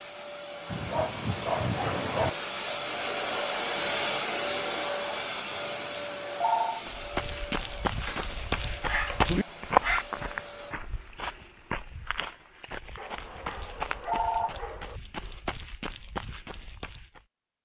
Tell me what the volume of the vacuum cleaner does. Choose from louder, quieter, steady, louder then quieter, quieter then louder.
louder then quieter.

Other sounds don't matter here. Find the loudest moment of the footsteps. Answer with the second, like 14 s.
10 s.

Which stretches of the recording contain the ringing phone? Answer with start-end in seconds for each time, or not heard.
5.5-6.8, 13.2-14.5.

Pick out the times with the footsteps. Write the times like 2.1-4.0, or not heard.
6.8-17.2.